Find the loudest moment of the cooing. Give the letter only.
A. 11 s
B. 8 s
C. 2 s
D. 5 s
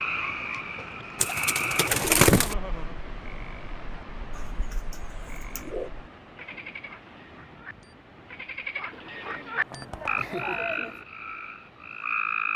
C.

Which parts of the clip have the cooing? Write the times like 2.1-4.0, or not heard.
1.1-2.5, 4.3-5.9, 8.9-11.1.